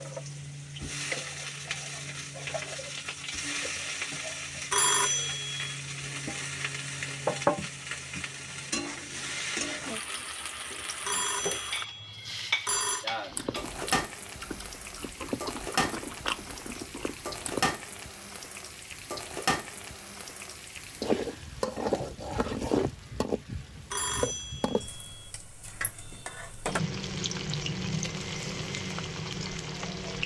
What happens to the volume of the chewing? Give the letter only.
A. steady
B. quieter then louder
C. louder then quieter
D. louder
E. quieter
C.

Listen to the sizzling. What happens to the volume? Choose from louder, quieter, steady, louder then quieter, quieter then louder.
steady.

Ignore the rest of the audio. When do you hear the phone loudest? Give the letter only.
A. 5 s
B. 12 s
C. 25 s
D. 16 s
A.